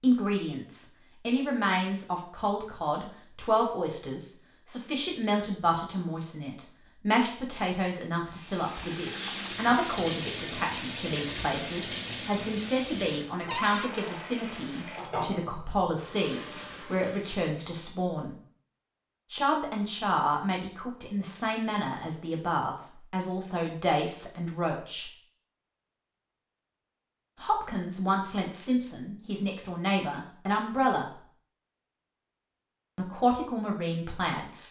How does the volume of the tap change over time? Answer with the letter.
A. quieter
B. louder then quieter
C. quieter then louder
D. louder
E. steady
A.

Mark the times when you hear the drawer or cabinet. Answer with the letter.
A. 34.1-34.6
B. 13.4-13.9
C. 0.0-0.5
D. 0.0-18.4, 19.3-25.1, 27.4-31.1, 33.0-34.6
B.